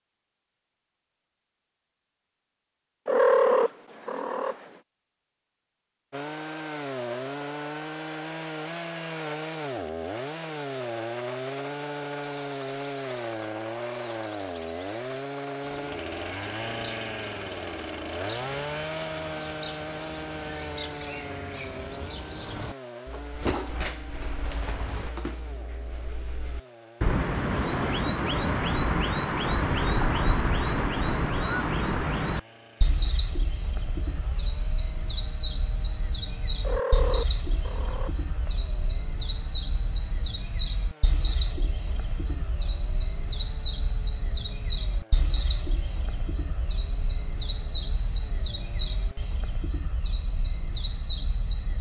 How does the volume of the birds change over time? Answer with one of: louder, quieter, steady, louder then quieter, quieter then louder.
louder then quieter.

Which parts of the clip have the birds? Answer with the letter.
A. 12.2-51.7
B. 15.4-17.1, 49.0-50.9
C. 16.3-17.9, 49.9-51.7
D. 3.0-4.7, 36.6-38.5
A.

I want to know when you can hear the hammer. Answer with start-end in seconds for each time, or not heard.
not heard.